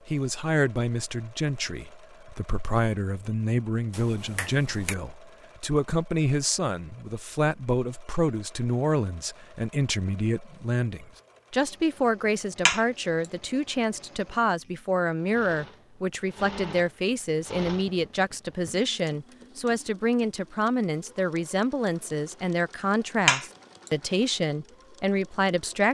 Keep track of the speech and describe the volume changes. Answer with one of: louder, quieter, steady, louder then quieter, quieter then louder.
steady.